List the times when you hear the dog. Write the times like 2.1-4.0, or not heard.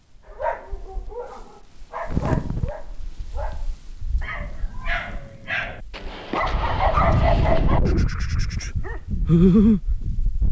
0.3-10.1.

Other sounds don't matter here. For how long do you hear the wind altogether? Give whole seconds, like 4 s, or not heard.
9 s.